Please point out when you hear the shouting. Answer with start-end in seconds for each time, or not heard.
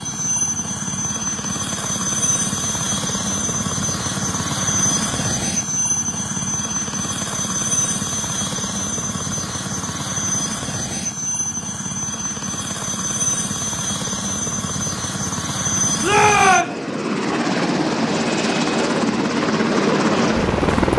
16.0-16.8.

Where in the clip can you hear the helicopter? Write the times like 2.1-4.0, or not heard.
0.0-20.9.